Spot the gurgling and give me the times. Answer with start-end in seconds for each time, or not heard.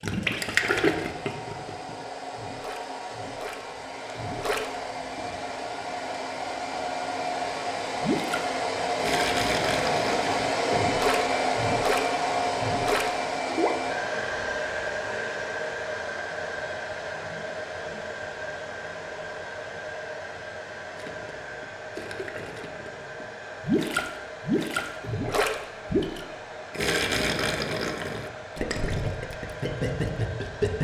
0.0-5.2, 8.0-13.7, 20.9-30.7.